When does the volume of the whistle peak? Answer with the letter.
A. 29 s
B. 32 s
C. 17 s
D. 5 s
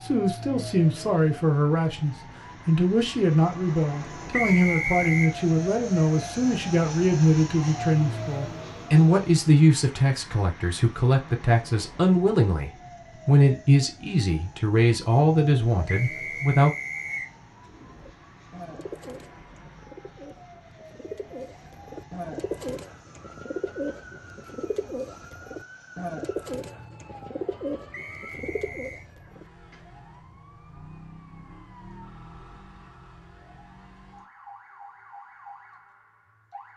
D.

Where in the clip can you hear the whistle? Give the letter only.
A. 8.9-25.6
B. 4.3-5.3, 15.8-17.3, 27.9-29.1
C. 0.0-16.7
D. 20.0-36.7
B.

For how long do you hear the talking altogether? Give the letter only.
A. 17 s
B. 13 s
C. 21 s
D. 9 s
A.